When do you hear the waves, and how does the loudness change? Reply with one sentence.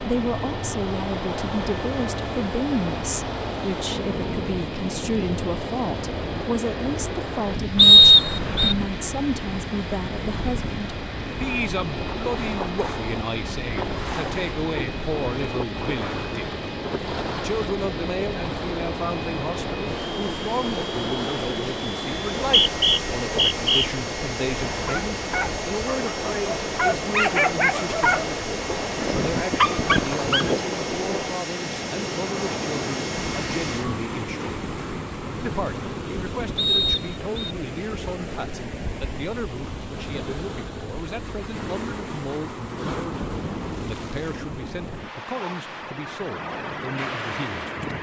You can hear the waves from 0.0 to 47.9 s, at a steady volume.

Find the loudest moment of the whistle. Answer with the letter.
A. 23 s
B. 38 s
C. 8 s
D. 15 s
C.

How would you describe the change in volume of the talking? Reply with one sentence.
The volume of the talking goes down.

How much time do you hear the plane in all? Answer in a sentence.
You can hear the plane for 34 seconds altogether.